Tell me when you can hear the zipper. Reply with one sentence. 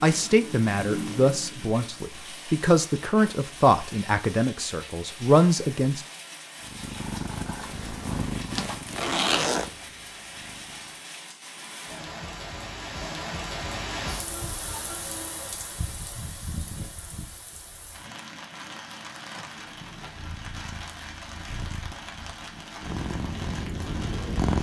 The zipper can be heard from 8.5 to 9.7 s and from 19.4 to 20.2 s.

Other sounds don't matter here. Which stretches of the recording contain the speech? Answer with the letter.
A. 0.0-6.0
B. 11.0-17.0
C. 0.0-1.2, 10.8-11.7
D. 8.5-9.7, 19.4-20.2
A.